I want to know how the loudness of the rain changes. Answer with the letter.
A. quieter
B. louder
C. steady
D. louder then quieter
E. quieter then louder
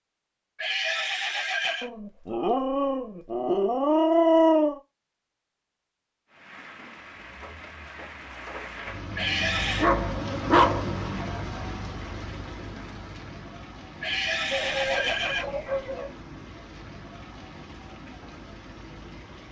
D.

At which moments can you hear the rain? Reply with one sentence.
The rain can be heard from 6.2 to 19.4 s.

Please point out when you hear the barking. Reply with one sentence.
You can hear the barking from 1.8 to 4.8 s, from 9.6 to 10.9 s and from 14.5 to 16.1 s.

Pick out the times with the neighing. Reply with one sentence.
The neighing can be heard from 0.6 to 1.9 s, from 9.2 to 9.9 s and from 14.0 to 15.6 s.